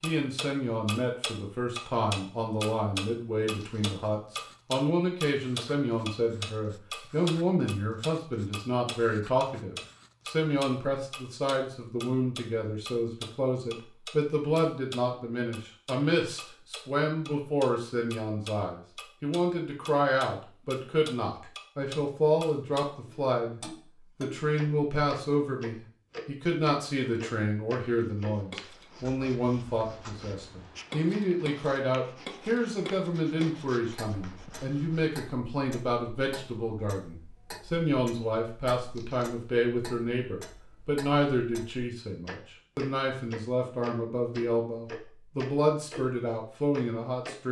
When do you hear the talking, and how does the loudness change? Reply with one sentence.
You can hear the talking from 0.0 to 47.4 s, at a steady volume.